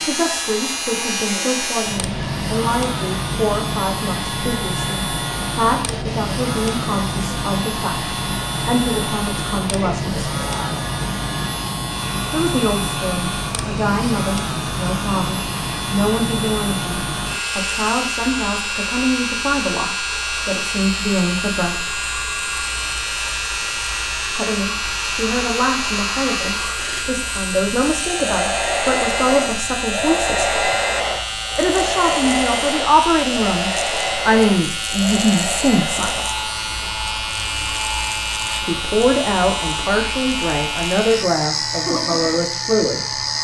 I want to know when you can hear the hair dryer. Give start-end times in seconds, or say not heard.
0.0-43.4.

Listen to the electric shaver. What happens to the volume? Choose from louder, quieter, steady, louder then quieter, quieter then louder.
steady.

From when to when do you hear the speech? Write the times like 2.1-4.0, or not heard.
0.0-10.2, 12.3-21.9, 24.3-30.6, 31.6-36.2, 38.6-43.1.